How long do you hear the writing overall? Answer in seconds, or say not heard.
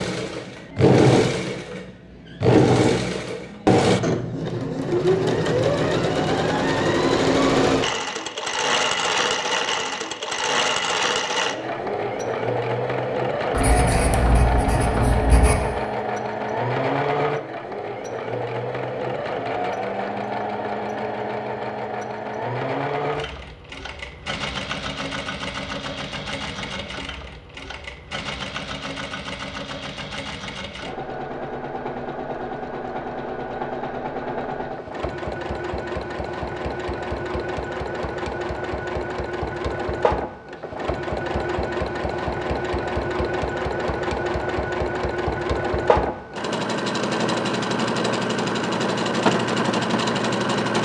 2 s.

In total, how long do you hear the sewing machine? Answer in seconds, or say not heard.
51 s.